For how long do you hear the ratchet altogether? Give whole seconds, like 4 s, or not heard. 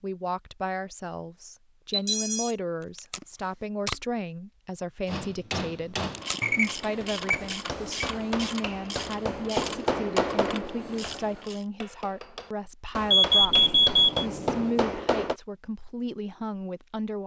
6 s.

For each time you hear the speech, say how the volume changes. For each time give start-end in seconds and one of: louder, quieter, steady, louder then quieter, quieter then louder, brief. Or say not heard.
0.0-17.2 steady.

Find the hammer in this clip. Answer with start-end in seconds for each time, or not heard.
5.0-6.2, 7.0-15.3.